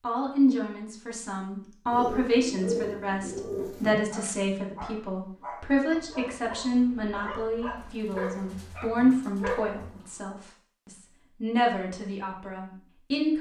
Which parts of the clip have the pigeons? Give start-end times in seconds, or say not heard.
1.9-4.0, 7.8-10.3.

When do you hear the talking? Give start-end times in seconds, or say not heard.
0.0-13.3.